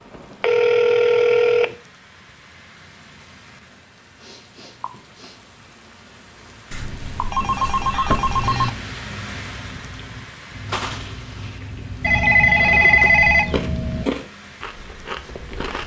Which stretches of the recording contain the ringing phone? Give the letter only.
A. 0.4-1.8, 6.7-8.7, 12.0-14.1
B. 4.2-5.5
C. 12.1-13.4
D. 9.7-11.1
A.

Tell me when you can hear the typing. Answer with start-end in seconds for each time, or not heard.
not heard.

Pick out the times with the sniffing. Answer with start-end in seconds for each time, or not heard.
4.2-5.5.